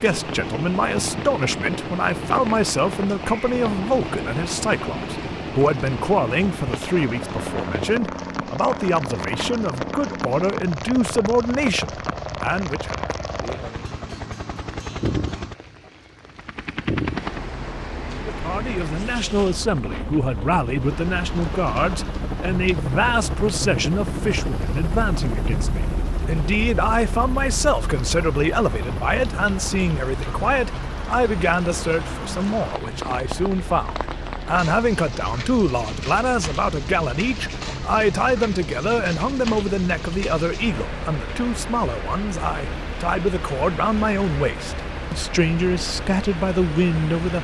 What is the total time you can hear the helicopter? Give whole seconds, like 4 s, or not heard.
47 s.